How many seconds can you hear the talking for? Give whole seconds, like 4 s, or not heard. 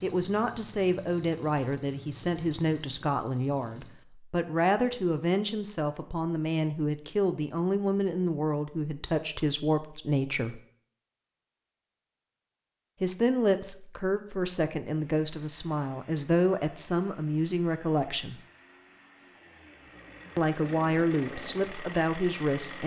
18 s.